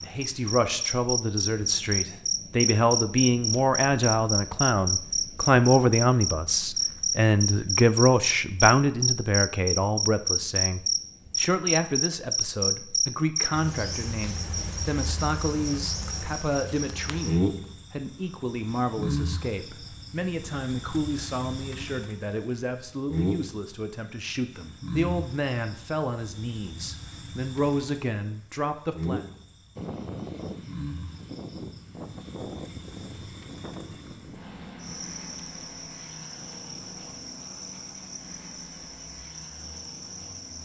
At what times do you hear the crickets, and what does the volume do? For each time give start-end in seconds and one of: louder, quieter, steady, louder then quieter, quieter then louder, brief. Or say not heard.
0.0-40.6 quieter.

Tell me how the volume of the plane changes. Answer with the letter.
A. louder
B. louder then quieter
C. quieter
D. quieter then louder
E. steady
C.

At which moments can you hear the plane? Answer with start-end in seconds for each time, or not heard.
29.8-40.6.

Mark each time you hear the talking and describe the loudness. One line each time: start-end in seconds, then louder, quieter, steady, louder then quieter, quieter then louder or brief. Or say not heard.
0.0-29.2 quieter.